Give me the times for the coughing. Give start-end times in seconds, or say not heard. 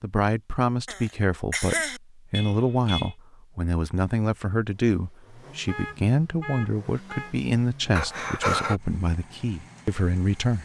0.8-2.0, 8.0-8.8.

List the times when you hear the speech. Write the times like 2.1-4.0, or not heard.
0.0-10.6.